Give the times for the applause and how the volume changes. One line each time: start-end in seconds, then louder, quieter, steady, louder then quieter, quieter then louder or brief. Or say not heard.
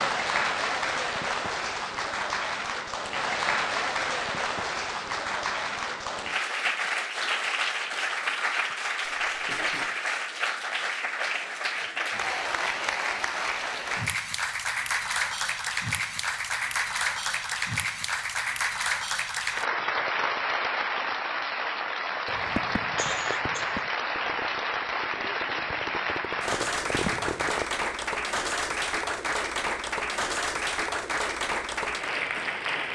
0.0-32.9 steady.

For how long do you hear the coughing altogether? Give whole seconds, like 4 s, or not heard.
2 s.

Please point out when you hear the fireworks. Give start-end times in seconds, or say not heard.
22.2-27.6.